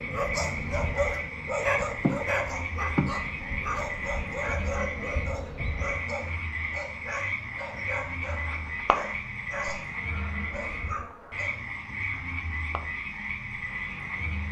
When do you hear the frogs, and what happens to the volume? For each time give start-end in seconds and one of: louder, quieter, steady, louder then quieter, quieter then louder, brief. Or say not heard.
0.0-14.4 steady.